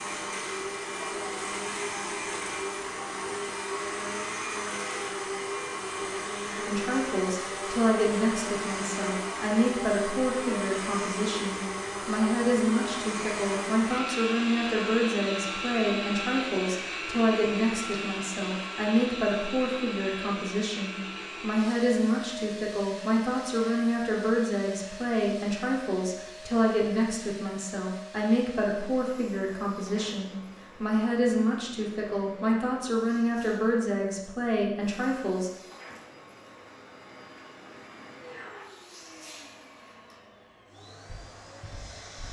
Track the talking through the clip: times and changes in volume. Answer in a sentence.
The talking can be heard from 6.5 to 35.5 s, at a steady volume.